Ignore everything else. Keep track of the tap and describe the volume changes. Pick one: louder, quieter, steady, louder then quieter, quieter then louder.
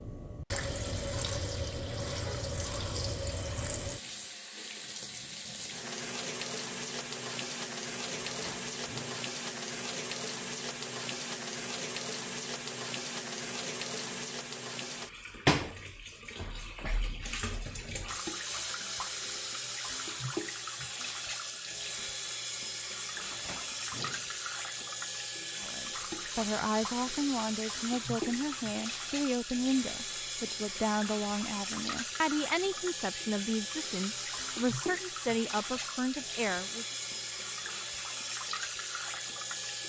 steady.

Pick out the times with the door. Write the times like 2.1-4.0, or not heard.
8.2-9.2, 23.1-24.9.